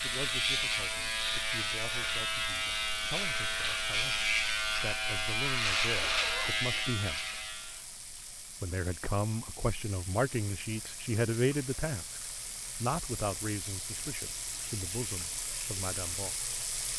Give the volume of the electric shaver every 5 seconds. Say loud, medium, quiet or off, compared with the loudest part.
loud, loud, off, off.